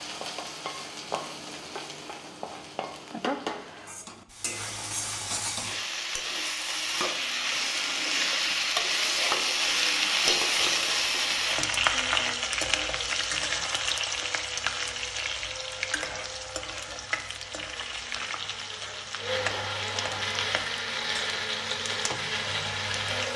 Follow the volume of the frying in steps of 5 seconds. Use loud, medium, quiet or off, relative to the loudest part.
medium, loud, loud, medium, quiet.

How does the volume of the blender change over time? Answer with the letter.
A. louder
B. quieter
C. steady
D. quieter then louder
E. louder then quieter
A.